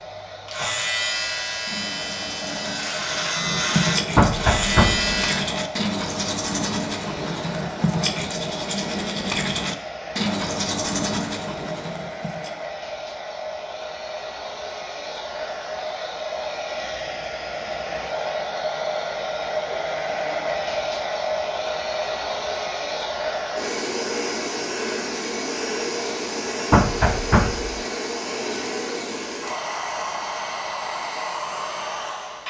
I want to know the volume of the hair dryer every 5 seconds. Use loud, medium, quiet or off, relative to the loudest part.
medium, medium, medium, loud, loud, loud, loud.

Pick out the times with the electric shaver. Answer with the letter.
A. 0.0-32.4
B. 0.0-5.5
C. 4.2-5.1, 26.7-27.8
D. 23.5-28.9
B.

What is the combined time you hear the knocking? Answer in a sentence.
You can hear the knocking for 2 seconds altogether.